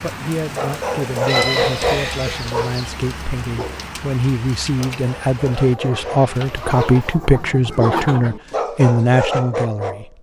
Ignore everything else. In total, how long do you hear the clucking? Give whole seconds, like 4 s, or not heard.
4 s.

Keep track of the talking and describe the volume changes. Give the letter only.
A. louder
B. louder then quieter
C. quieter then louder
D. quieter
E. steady
A.